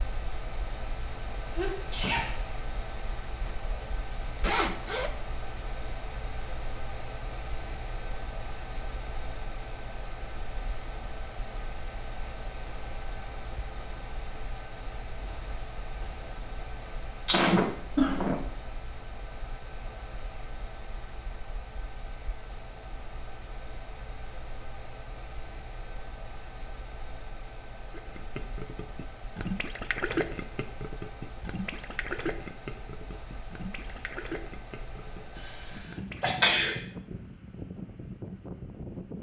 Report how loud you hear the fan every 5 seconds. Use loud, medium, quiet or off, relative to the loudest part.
loud, loud, loud, loud, medium, medium, medium, loud.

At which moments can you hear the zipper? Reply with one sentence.
The zipper can be heard from 3.4 to 5.1 s.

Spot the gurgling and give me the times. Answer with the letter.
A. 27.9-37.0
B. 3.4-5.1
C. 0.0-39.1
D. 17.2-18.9
A.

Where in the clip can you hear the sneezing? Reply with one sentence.
The sneezing can be heard from 1.6 to 2.4 s, from 17.2 to 18.4 s and from 36.2 to 36.8 s.